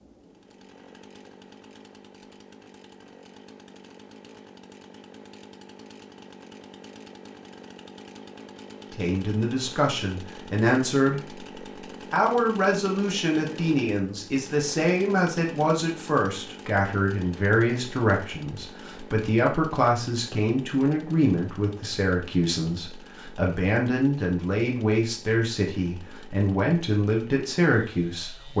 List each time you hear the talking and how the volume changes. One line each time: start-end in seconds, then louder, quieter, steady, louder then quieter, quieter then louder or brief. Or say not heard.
8.9-11.4 brief
12.1-28.5 steady.